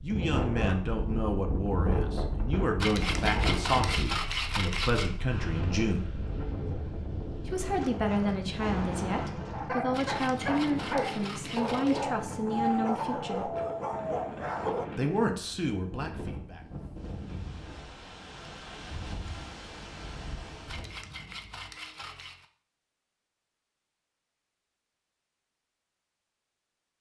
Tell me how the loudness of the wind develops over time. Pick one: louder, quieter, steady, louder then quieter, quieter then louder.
quieter.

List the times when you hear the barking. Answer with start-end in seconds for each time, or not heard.
8.6-14.9.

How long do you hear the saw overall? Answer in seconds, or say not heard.
6 s.